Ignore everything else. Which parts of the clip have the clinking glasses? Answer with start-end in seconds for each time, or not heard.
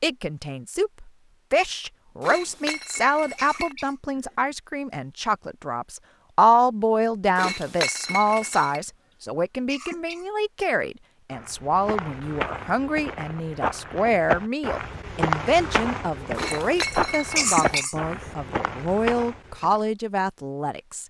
2.2-3.8, 7.3-8.8, 16.4-17.9.